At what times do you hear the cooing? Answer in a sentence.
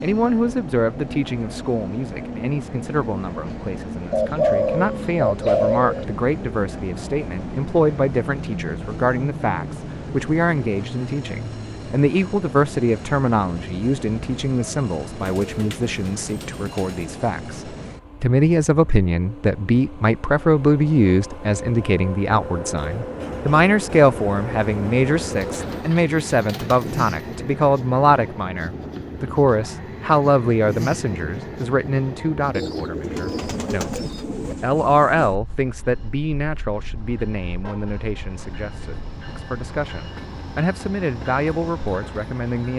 You can hear the cooing from 4.1 to 6.0 s, from 15.2 to 17.1 s, from 25.2 to 27.4 s and from 32.5 to 34.5 s.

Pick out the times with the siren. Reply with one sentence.
The siren can't be heard in this clip.